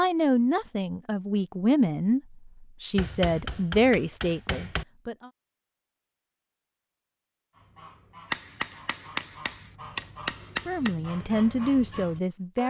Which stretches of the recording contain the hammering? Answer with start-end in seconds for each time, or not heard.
3.0-4.8, 8.3-10.9.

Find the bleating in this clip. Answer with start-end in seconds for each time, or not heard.
not heard.